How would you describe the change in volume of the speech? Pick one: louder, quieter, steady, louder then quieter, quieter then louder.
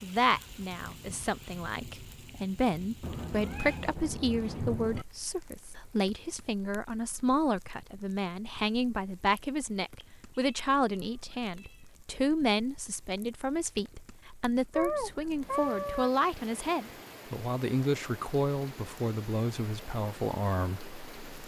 steady.